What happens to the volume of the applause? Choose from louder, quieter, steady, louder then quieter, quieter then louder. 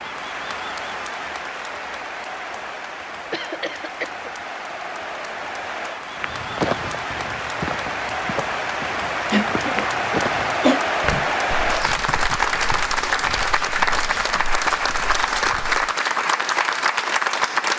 louder.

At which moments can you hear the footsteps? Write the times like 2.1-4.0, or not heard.
6.2-15.8.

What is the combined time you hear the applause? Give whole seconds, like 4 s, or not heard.
18 s.